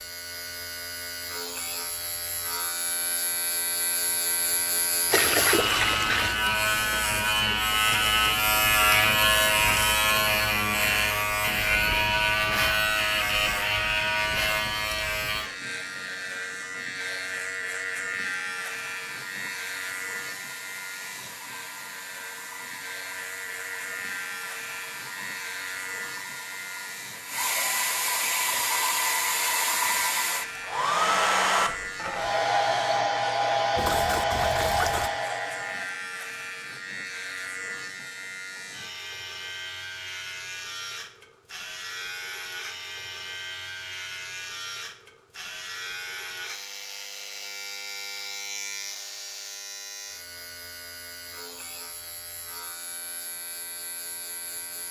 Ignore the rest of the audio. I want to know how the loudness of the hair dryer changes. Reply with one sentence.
The loudness of the hair dryer goes up.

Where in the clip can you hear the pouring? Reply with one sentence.
The pouring can be heard from 5.1 to 6.4 s and from 33.8 to 35.1 s.